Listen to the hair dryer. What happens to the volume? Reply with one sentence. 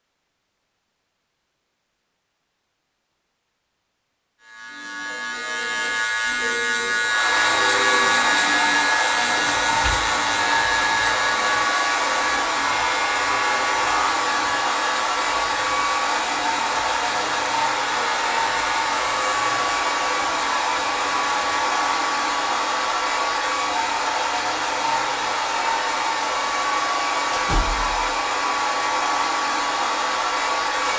The loudness of the hair dryer stays about the same.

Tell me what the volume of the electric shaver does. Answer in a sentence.
The loudness of the electric shaver goes down.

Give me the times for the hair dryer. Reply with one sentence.
The hair dryer can be heard from 7.0 to 30.9 s.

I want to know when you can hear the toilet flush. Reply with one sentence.
The toilet flush can't be heard in this clip.